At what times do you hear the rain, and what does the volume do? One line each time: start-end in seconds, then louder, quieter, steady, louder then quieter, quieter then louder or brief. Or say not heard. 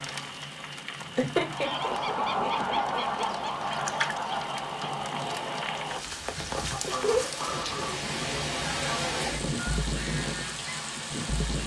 0.0-11.6 louder.